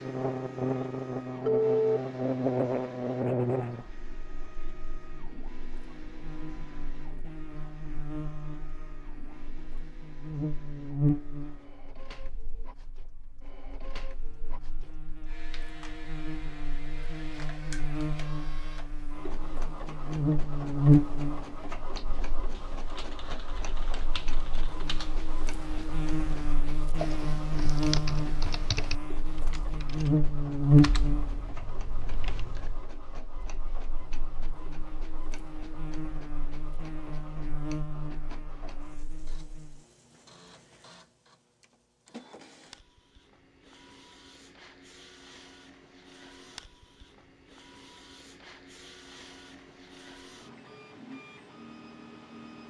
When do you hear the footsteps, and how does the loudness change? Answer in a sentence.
You can't hear the footsteps here.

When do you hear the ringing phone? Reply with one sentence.
You can hear the ringing phone from 1.4 to 2.0 s.